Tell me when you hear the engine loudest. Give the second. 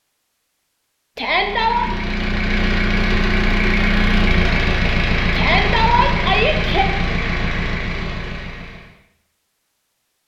4 s.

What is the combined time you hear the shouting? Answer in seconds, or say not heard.
2 s.